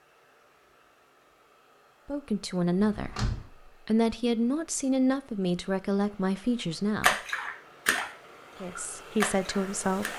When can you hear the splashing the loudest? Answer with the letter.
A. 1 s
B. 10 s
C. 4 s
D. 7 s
D.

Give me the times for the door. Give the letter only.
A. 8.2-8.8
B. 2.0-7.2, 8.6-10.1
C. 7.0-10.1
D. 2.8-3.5
D.